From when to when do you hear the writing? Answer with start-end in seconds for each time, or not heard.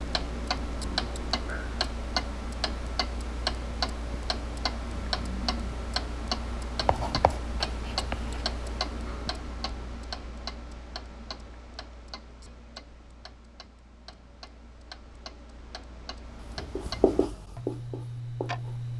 6.8-8.4, 16.2-18.9.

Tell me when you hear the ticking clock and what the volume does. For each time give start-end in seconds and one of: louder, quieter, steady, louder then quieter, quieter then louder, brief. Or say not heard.
0.0-18.9 quieter then louder.